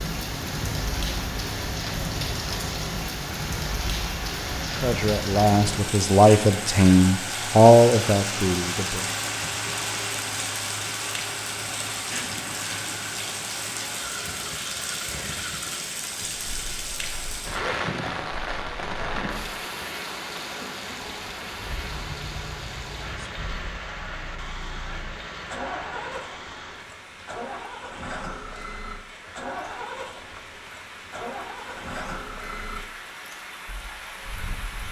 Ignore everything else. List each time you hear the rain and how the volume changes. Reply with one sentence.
The rain can be heard from 0.0 to 34.8 s, getting quieter.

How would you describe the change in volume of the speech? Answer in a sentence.
The volume of the speech goes up, then down.